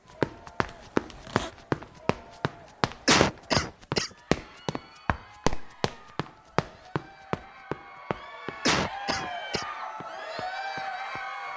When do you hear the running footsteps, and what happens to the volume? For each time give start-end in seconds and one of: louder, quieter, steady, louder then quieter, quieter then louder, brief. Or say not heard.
0.1-11.2 quieter.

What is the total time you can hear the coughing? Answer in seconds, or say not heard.
2 s.